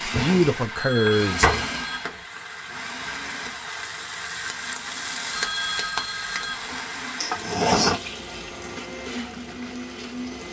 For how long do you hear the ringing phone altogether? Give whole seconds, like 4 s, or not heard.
3 s.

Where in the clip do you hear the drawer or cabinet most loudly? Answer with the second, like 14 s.
8 s.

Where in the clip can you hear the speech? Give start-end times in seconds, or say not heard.
0.0-1.7.